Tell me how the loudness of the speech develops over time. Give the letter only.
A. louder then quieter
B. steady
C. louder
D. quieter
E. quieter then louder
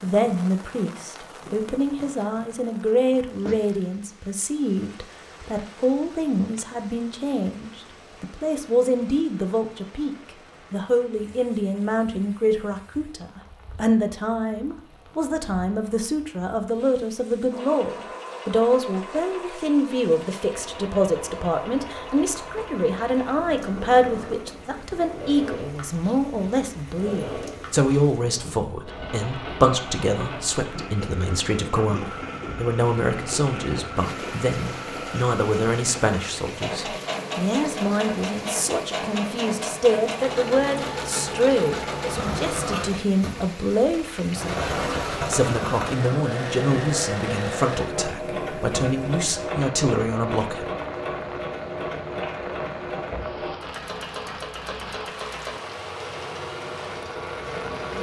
B.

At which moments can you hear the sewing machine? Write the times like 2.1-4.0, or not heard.
17.5-57.9.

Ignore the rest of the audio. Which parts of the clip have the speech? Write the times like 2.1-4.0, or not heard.
0.0-50.6.